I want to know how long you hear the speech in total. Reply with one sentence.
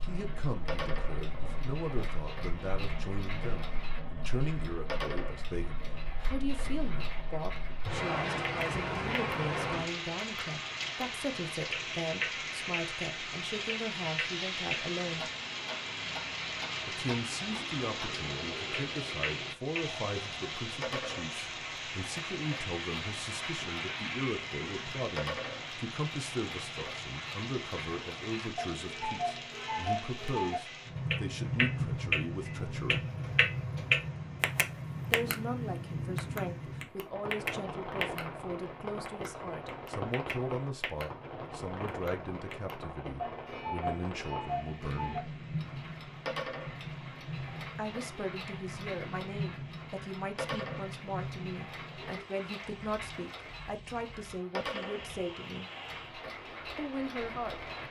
You can hear the speech for 51 seconds altogether.